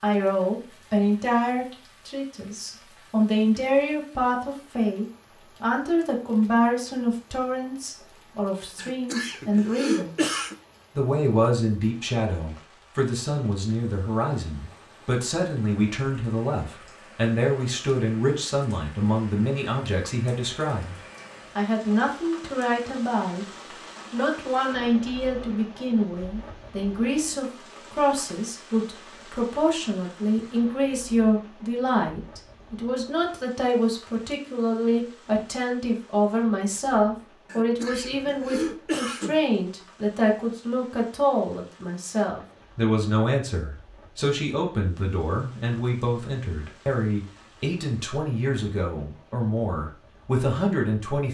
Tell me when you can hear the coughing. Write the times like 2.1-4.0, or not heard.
8.8-10.6, 37.5-39.4.